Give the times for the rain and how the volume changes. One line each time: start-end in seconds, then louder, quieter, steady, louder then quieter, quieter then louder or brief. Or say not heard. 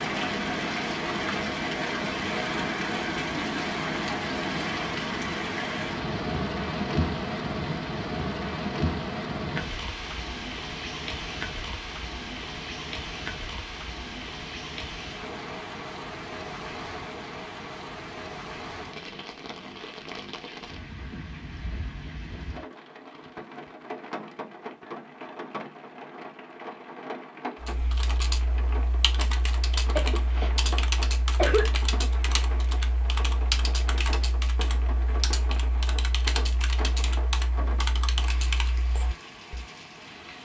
0.0-40.4 quieter.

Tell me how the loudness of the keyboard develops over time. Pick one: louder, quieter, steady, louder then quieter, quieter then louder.
steady.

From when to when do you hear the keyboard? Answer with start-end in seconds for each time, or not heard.
27.6-39.6.